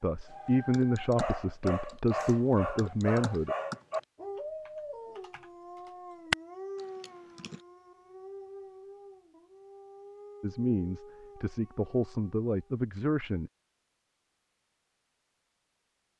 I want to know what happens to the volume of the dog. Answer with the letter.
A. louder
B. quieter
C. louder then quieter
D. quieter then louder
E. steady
B.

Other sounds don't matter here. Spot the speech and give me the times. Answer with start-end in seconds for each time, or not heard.
0.0-3.5, 10.4-13.5.